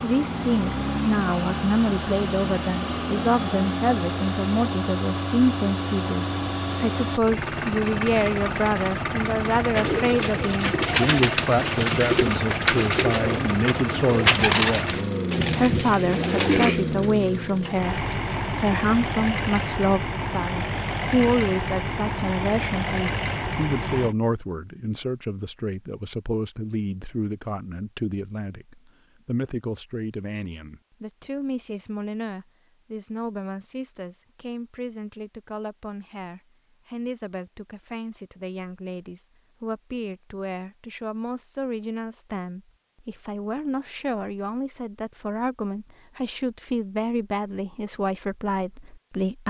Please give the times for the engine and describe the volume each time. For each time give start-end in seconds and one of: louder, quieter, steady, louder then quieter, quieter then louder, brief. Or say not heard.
0.0-24.1 steady.